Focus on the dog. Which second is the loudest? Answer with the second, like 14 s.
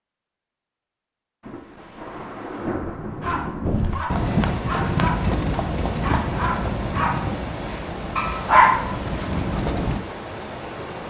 9 s.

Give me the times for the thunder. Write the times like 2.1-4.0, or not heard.
1.4-3.9.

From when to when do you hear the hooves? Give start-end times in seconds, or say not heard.
3.6-10.0.